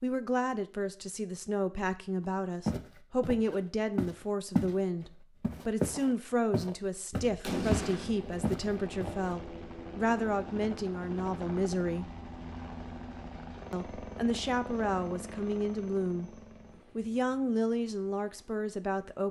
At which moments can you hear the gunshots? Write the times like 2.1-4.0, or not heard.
7.1-8.4.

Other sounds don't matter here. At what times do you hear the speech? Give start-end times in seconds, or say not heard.
0.0-12.1, 13.7-19.2.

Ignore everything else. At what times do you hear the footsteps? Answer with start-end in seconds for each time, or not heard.
2.6-4.8, 5.4-9.3.